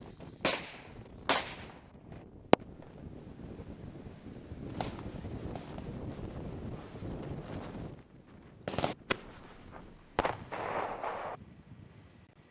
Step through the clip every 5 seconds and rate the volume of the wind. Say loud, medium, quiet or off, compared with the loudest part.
loud, loud, medium.